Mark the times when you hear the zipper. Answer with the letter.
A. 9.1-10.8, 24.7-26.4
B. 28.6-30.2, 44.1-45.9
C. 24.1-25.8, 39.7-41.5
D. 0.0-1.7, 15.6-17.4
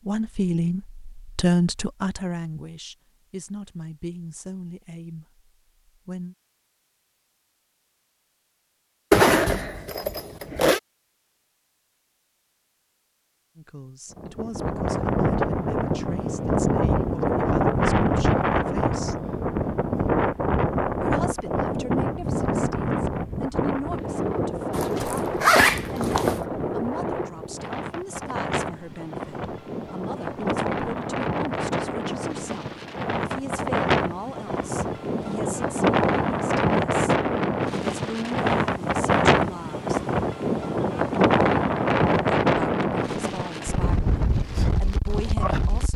A.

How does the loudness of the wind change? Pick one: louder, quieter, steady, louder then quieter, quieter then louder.
quieter then louder.